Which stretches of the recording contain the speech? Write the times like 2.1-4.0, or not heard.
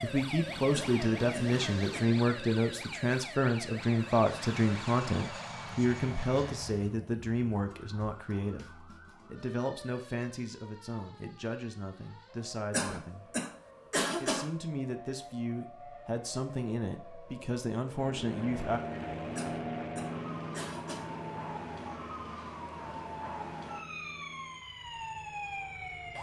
0.0-13.3, 14.2-18.8.